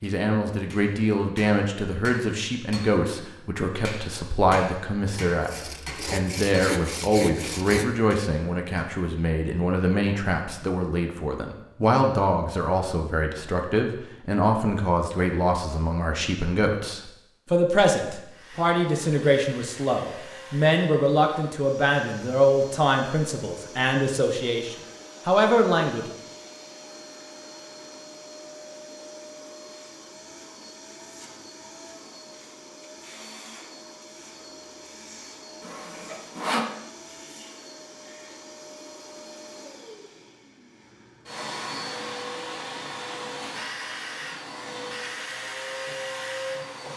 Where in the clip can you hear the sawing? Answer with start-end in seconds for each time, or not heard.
5.2-7.8, 35.6-36.8.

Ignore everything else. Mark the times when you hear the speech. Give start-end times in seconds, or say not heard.
0.0-26.1.